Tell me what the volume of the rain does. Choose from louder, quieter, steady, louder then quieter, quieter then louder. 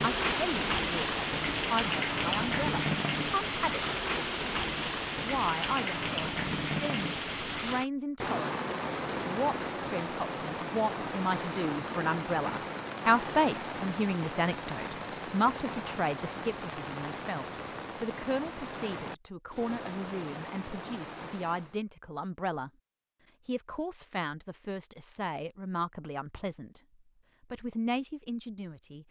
quieter.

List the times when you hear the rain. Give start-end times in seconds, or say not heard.
0.0-21.8.